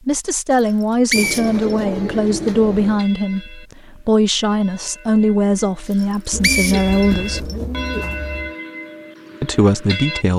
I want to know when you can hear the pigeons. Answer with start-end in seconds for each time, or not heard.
1.1-3.0, 6.3-8.6.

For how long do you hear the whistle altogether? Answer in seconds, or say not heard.
3 s.